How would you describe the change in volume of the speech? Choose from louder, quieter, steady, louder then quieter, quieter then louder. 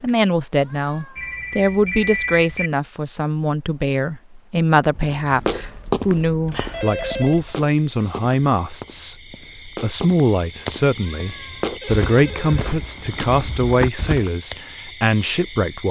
steady.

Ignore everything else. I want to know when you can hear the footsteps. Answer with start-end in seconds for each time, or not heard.
4.8-14.3.